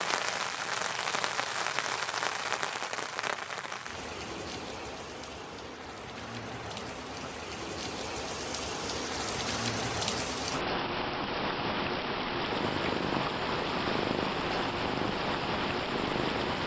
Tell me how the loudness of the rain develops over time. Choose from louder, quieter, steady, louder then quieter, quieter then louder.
quieter then louder.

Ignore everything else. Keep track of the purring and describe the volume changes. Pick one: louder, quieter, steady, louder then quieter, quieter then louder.
steady.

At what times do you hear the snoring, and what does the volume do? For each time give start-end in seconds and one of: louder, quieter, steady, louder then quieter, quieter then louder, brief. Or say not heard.
not heard.